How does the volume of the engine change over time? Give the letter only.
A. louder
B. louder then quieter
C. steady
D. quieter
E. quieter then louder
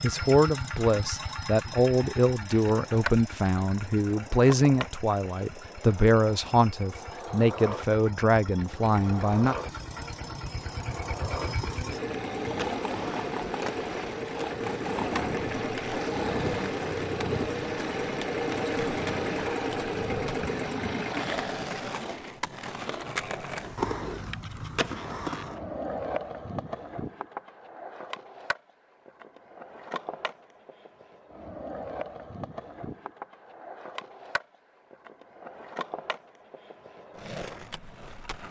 E.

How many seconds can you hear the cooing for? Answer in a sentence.
The cooing can't be heard in this clip.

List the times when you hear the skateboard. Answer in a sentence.
You can hear the skateboard from 2.9 to 38.4 s.